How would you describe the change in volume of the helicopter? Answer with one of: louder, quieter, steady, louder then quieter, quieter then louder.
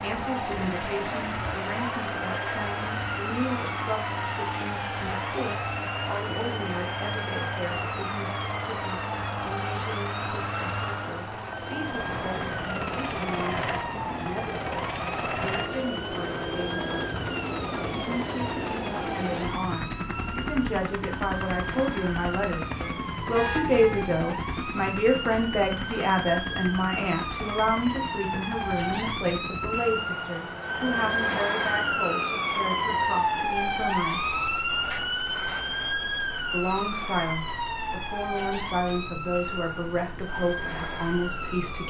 quieter.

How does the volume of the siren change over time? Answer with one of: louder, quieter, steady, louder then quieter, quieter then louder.
louder.